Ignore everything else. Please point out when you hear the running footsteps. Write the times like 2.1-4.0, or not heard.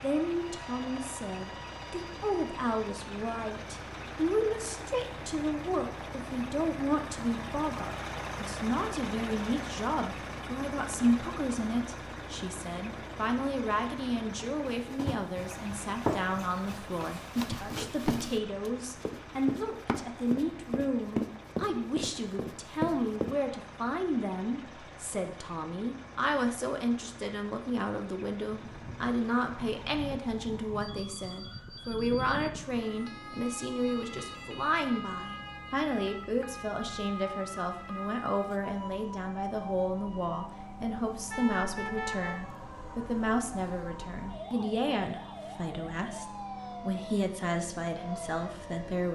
14.7-23.4.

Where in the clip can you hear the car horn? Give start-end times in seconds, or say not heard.
41.3-42.4.